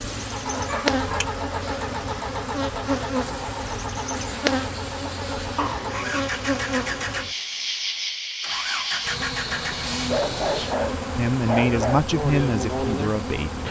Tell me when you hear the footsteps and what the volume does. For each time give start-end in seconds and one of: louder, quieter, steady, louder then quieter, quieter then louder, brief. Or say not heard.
not heard.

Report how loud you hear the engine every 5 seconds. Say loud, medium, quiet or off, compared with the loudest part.
loud, loud, medium.